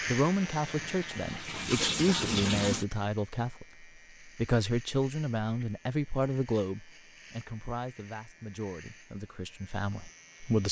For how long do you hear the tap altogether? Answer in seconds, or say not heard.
3 s.